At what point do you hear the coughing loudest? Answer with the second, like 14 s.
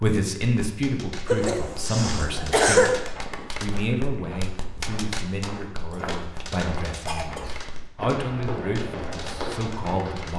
3 s.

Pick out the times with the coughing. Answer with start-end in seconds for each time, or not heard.
1.2-3.0, 5.9-7.6.